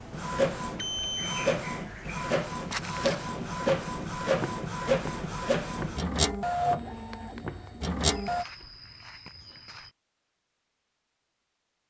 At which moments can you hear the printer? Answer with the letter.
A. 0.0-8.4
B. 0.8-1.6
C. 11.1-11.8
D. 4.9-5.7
A.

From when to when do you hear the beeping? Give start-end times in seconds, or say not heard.
0.8-1.6.